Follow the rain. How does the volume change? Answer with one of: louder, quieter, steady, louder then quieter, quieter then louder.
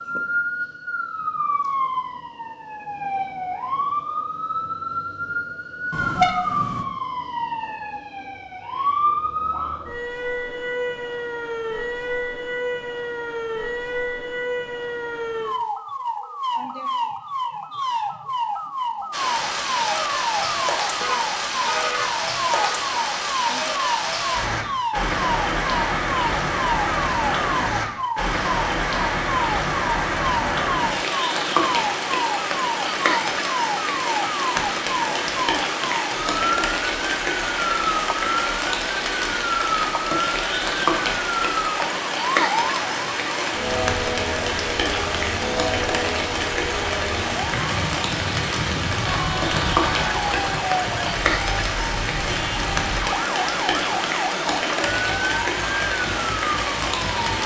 steady.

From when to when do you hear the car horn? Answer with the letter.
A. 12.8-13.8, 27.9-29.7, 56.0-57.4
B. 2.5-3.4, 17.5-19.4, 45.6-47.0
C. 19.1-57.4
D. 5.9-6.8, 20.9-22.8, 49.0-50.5
D.